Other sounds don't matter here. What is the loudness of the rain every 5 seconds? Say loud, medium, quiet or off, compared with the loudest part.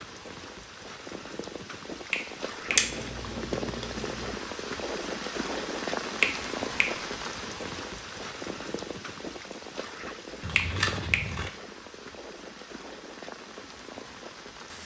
loud, loud, medium.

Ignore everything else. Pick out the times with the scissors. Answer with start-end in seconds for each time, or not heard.
2.8-4.3, 10.4-11.5.